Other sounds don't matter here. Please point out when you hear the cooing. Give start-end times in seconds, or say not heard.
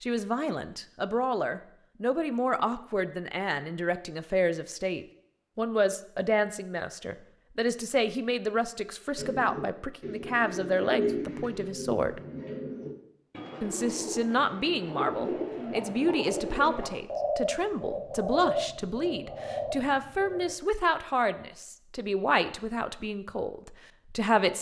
9.2-20.6.